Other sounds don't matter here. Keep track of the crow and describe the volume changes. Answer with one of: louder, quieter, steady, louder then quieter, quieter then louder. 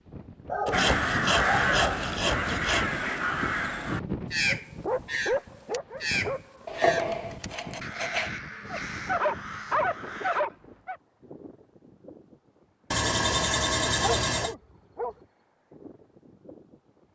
quieter.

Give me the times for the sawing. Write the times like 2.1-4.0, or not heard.
0.7-2.9, 6.7-8.3, 12.9-14.6.